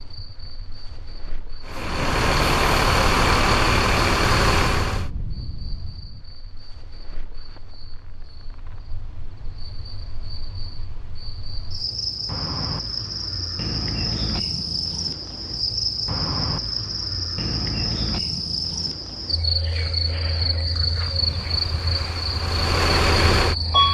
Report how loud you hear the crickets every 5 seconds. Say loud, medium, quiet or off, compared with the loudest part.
quiet, quiet, loud, loud, loud.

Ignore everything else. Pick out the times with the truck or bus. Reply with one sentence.
You can hear the truck or bus from 1.6 to 5.1 s and from 21.0 to 23.8 s.